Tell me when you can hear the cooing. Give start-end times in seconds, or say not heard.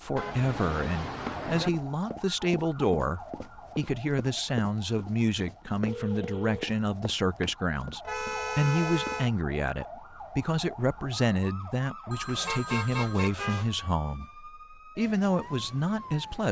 not heard.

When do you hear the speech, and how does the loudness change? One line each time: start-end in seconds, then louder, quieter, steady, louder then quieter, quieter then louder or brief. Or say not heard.
0.0-16.4 steady.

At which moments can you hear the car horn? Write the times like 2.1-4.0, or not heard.
0.1-1.7, 8.1-9.3, 12.4-13.7.